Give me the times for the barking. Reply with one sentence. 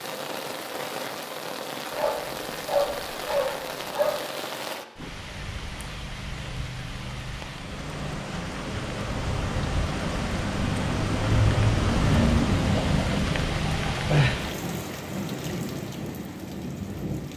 The barking can be heard from 1.9 to 4.2 s.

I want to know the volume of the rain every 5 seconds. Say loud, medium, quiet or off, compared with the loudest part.
medium, medium, loud, medium.